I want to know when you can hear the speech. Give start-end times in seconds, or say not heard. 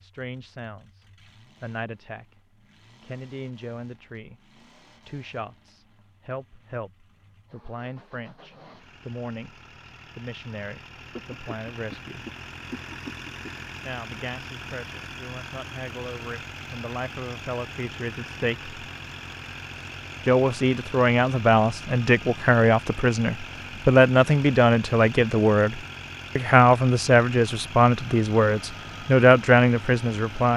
0.0-2.4, 3.0-12.2, 13.8-18.8, 20.2-30.5.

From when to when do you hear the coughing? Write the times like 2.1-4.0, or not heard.
11.2-13.7.